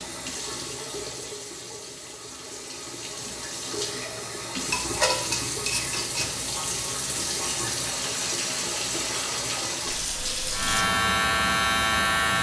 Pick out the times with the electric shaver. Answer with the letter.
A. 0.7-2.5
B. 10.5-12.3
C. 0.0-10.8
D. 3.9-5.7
B.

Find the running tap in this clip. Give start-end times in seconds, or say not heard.
0.0-10.8.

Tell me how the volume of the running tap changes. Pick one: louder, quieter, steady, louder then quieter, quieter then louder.
louder.